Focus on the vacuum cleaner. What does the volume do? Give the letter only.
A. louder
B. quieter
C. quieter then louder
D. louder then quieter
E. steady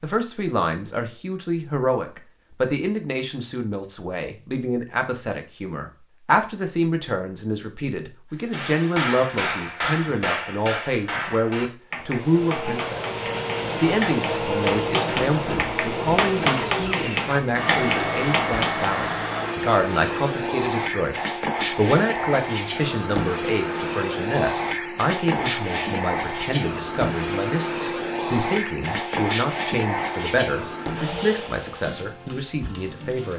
E.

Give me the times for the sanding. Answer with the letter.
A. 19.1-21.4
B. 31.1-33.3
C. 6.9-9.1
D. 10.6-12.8
B.